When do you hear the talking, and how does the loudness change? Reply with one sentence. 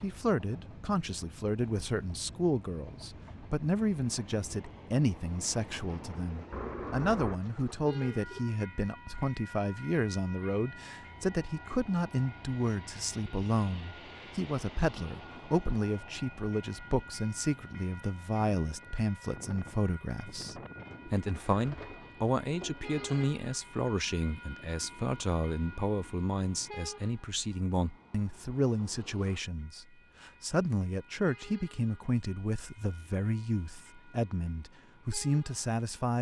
You can hear the talking from 0.0 to 36.1 s, at a steady volume.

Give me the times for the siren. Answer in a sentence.
You can't hear the siren here.